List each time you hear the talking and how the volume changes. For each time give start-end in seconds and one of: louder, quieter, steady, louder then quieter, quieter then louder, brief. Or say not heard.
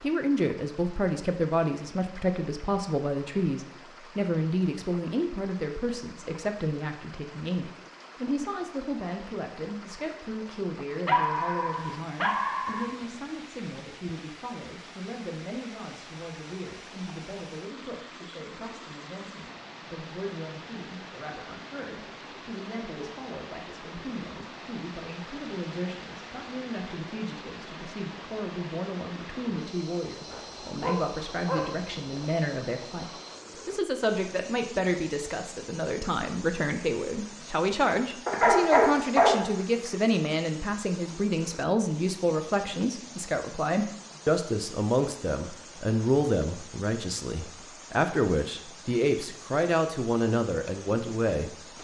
0.0-51.5 quieter then louder.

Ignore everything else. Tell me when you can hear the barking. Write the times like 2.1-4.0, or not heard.
11.1-12.8, 30.3-32.2, 38.2-39.9.